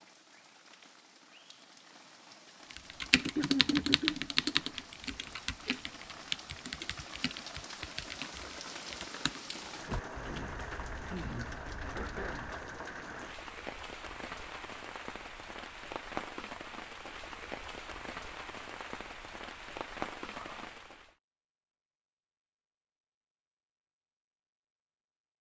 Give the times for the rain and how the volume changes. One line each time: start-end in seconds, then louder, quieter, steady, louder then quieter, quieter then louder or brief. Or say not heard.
0.0-21.1 louder.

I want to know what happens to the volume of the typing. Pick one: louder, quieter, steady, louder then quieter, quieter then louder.
quieter.